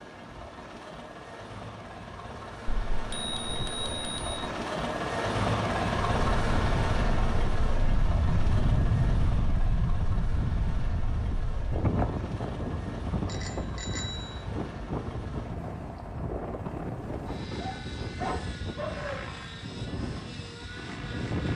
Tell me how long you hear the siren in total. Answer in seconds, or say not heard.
not heard.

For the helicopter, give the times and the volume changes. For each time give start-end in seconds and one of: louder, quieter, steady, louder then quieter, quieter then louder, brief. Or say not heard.
0.0-21.5 louder then quieter.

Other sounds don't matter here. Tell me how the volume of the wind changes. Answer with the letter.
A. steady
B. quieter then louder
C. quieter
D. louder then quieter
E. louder
C.